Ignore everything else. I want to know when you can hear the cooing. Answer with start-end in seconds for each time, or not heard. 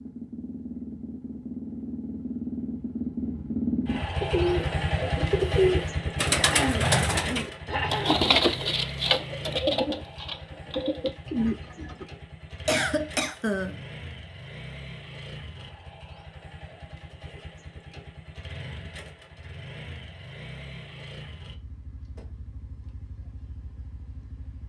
4.2-12.1.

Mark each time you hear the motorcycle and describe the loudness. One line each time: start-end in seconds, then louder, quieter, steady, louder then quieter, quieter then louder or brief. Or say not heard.
0.0-24.6 quieter.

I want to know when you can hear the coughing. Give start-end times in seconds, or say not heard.
6.3-8.2, 12.7-13.8.